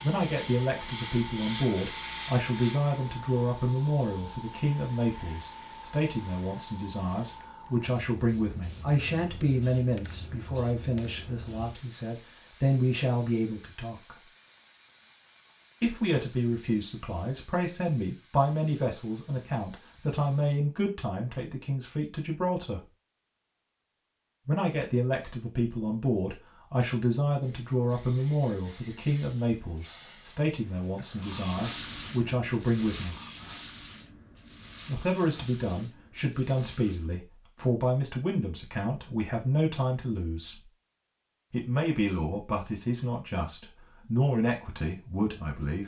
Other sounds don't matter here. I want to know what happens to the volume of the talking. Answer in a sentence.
The loudness of the talking stays about the same.